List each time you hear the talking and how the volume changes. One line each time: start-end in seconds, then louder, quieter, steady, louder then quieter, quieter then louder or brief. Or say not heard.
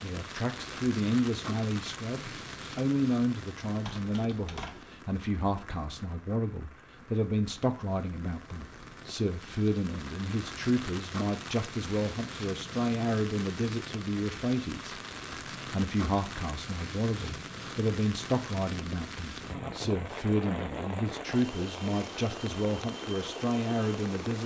0.0-24.4 steady.